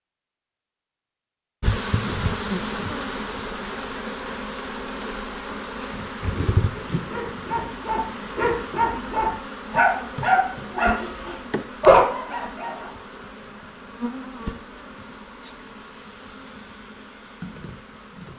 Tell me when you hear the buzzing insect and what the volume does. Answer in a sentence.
You can hear the buzzing insect from 1.6 to 18.3 s, getting quieter.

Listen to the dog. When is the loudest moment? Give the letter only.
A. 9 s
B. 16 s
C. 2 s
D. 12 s
D.